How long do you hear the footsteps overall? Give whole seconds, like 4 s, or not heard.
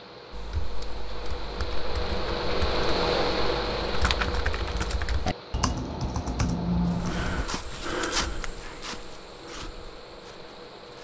4 s.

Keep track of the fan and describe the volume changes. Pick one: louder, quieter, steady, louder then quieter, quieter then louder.
louder then quieter.